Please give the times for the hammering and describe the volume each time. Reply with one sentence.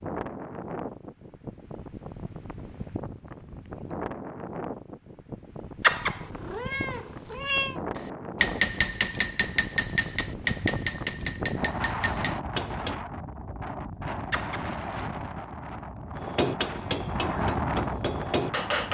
The hammering can be heard from 8.0 to 13.0 s, getting quieter; and briefly from 16.1 to 18.8 s.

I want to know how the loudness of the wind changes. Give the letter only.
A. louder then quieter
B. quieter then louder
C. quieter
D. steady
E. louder
E.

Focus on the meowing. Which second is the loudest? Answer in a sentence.
The loudest moment of the meowing is at 6 seconds.